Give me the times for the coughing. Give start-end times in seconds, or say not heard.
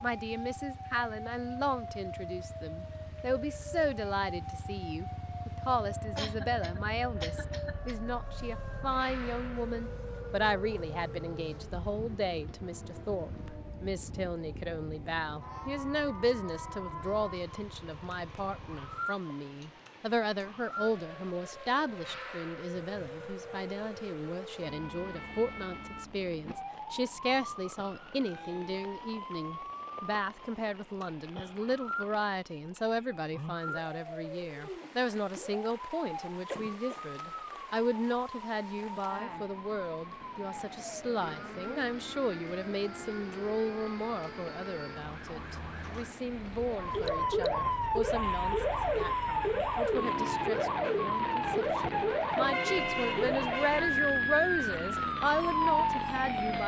6.2-8.1, 36.5-37.0.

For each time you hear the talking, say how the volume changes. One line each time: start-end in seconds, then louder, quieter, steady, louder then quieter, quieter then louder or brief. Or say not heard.
0.0-56.6 steady.